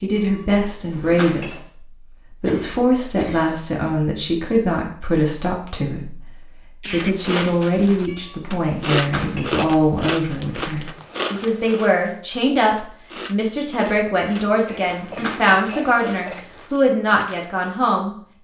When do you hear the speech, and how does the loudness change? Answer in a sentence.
You can hear the speech from 0.0 to 18.1 s, at a steady volume.